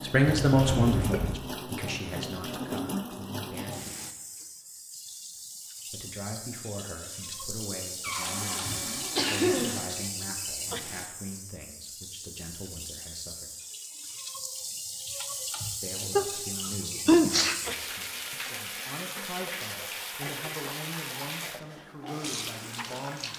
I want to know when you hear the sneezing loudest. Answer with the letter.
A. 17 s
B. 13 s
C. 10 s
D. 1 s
A.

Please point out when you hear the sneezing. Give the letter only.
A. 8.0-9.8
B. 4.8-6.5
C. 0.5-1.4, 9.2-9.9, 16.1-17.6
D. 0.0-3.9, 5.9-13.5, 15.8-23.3
C.